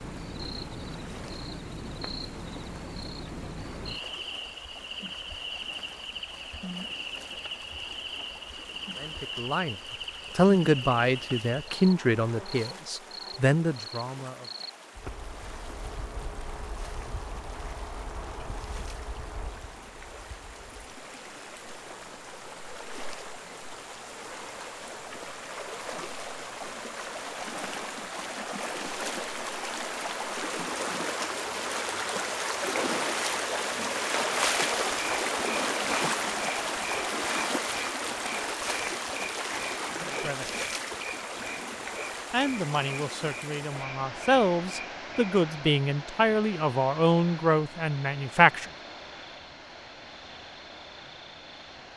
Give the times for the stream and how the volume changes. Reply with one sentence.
You can hear the stream from 0.0 to 51.9 s, getting louder then quieter.